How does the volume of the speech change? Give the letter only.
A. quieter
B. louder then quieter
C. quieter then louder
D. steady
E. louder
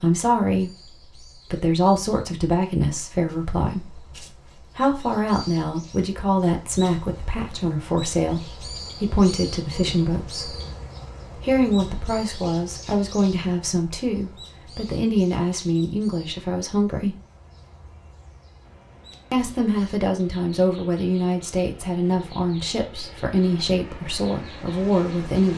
D.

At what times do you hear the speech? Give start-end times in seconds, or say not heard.
0.0-10.6, 11.4-17.1, 19.3-25.5.